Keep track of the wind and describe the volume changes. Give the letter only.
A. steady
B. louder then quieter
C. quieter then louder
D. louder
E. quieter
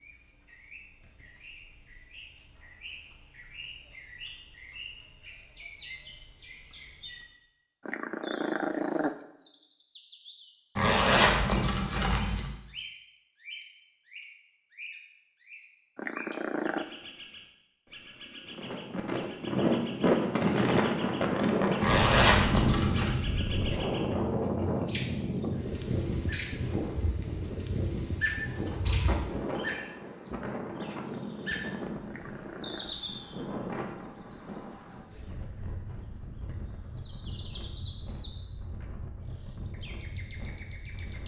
E.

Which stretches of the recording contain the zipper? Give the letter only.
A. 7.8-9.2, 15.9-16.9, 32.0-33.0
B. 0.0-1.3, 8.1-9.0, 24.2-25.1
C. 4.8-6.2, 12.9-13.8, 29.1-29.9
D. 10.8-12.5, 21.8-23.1
D.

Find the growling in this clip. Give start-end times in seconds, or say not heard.
7.8-9.2, 15.9-16.9, 32.0-33.0.